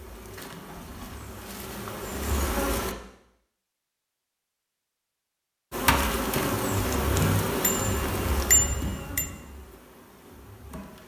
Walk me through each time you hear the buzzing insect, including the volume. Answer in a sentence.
You can hear the buzzing insect briefly from 0.0 to 3.0 s; and from 5.7 to 11.0 s, getting quieter.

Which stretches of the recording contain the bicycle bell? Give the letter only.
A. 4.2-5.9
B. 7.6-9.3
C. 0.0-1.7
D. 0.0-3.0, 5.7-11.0
B.